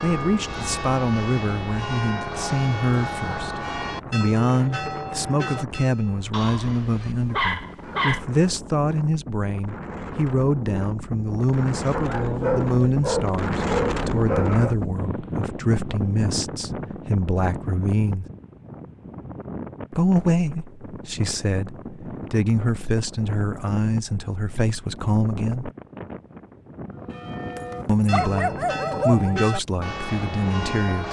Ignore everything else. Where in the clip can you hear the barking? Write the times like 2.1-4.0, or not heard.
6.3-8.2, 11.9-14.8, 27.6-29.4.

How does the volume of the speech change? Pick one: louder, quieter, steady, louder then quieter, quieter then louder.
steady.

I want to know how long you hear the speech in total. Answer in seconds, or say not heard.
27 s.